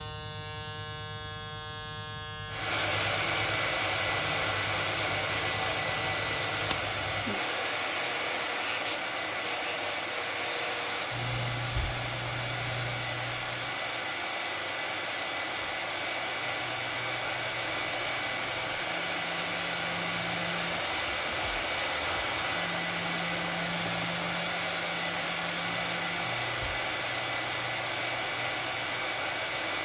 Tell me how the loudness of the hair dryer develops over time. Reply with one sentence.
The volume of the hair dryer stays about the same.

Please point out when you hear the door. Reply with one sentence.
The door can't be heard in this clip.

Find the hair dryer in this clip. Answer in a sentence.
The hair dryer can be heard from 2.5 to 29.7 s.